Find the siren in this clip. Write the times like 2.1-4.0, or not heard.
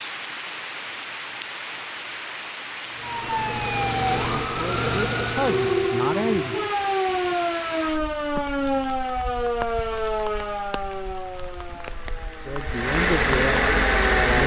3.0-14.4.